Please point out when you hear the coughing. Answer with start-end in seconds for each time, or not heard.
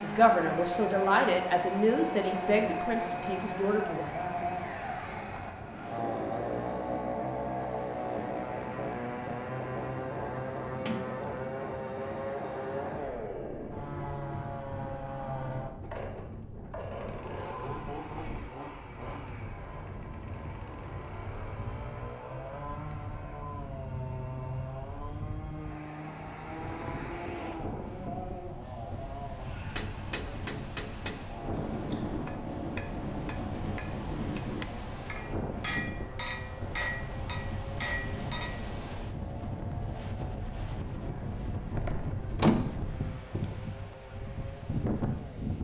not heard.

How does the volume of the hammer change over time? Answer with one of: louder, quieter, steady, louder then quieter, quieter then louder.
steady.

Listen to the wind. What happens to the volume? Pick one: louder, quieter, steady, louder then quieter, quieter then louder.
louder.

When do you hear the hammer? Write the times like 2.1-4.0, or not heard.
29.7-38.6.